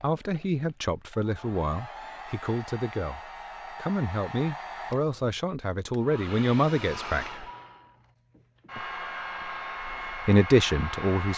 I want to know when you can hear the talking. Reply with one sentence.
The talking can be heard from 0.0 to 7.5 s and from 9.8 to 11.3 s.